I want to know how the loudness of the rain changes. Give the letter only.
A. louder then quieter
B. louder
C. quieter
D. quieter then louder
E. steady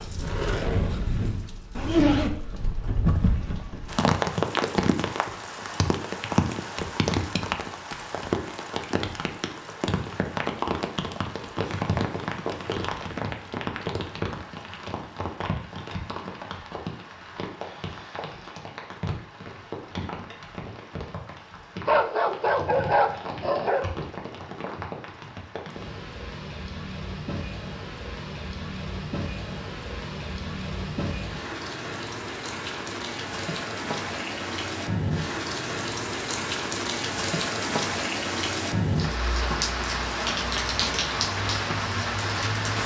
D.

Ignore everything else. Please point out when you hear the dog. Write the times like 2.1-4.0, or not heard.
21.9-23.9.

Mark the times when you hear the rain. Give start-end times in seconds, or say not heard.
0.0-42.8.